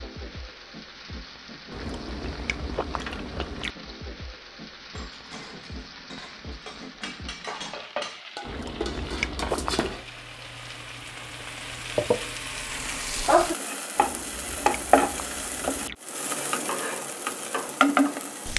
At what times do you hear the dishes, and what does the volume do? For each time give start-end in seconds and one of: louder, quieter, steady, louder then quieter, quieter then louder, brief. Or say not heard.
5.0-10.2 louder.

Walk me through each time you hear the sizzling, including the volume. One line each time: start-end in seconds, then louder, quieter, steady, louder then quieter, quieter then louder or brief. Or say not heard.
0.0-18.5 louder.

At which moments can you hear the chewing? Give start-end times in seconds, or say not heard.
1.7-3.8, 8.4-10.1, 13.9-15.9.